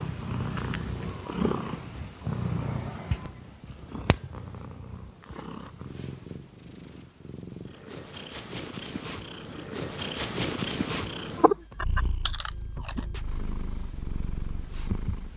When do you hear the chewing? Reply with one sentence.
You can hear the chewing from 11.7 to 13.1 s.